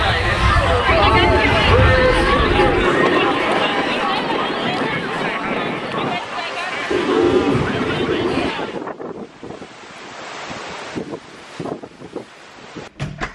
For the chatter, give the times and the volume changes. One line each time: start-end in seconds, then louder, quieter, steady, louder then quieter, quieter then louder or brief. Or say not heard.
0.0-8.8 quieter.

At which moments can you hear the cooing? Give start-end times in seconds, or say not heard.
0.8-3.5, 6.9-8.6.